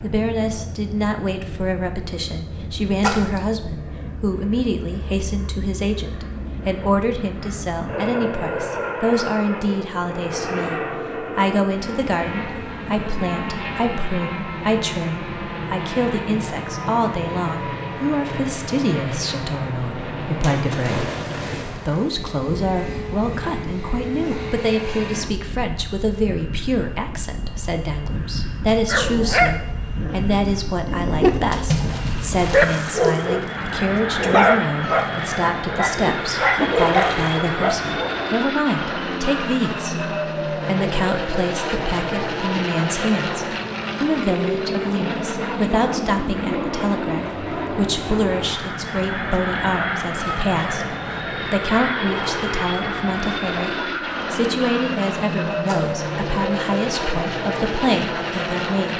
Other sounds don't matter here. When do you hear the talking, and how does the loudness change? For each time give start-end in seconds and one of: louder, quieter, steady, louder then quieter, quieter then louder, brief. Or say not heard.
0.0-58.9 steady.